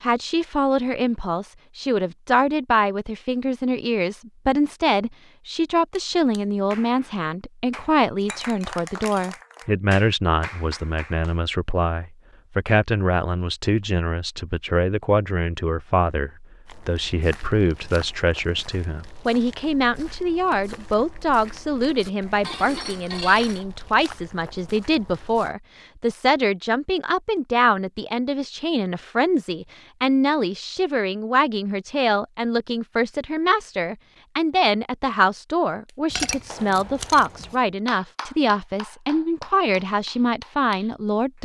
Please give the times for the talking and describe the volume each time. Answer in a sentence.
The talking can be heard from 0.0 to 41.4 s, at a steady volume.